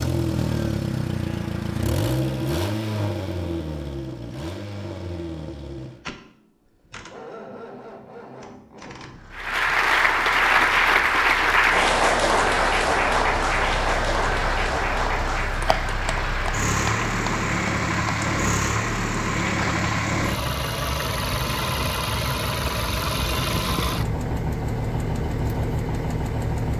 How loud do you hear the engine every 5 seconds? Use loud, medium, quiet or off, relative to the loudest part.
loud, quiet, medium, loud, loud, loud.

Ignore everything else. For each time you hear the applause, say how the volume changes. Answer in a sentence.
You can hear the applause from 9.3 to 20.1 s, getting quieter.